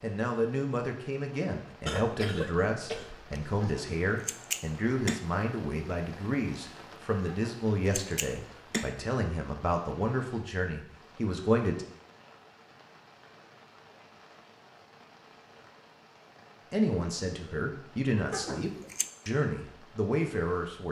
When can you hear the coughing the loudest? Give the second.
2 s.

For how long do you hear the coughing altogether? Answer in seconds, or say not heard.
2 s.